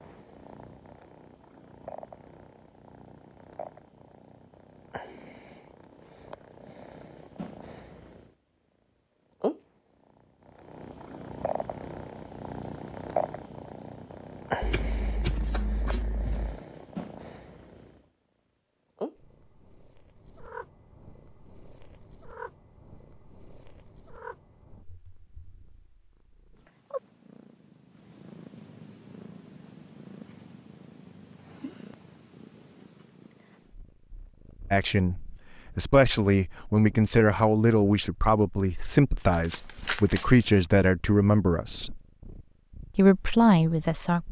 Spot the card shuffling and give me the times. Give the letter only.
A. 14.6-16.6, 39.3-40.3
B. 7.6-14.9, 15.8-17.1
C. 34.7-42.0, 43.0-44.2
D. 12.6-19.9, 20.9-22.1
A.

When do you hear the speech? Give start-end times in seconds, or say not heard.
34.7-42.0, 43.0-44.2.